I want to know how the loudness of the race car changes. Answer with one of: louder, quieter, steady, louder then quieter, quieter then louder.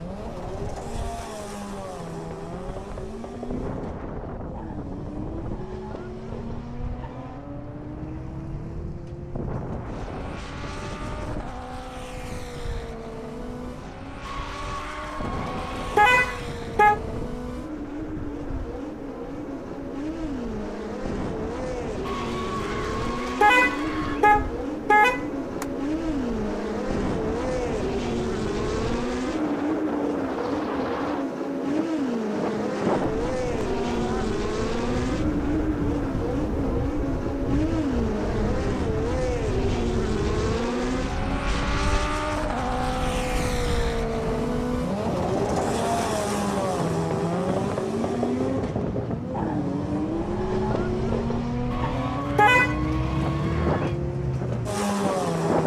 louder.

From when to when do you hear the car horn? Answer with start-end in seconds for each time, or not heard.
15.9-17.0, 23.4-25.6, 52.4-52.8.